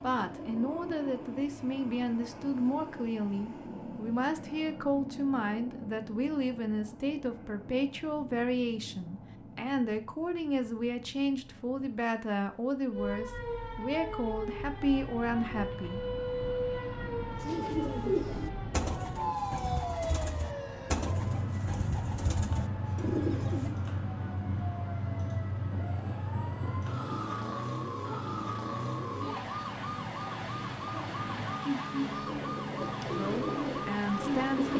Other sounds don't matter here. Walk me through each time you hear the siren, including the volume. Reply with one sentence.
The siren can be heard from 12.9 to 34.7 s, at a steady volume.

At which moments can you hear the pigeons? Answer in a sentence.
You can hear the pigeons from 17.4 to 23.8 s and from 32.1 to 34.7 s.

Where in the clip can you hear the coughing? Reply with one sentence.
The coughing can't be heard in this clip.